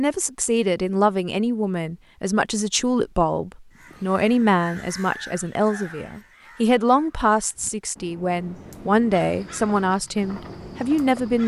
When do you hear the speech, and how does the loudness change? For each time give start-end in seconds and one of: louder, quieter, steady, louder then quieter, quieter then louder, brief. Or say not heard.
0.0-11.4 steady.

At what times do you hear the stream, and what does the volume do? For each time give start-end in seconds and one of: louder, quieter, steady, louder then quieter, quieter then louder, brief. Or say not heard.
not heard.